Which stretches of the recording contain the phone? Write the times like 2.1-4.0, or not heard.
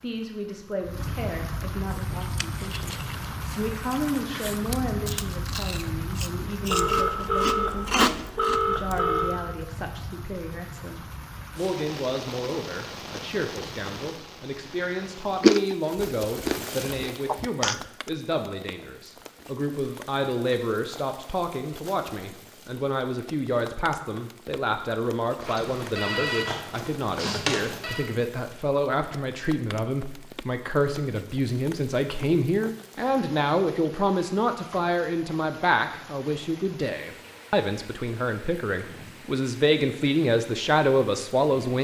6.7-9.4, 25.4-28.1.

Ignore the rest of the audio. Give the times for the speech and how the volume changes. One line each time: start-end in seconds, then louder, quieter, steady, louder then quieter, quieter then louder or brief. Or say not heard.
0.0-3.0 brief
3.5-41.7 louder.